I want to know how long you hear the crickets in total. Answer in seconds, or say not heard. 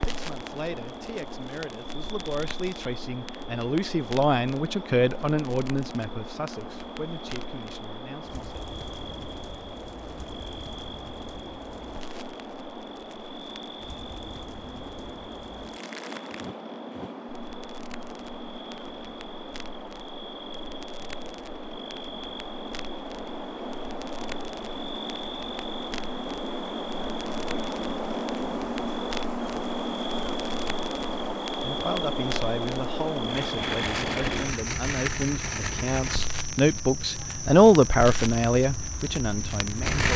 40 s.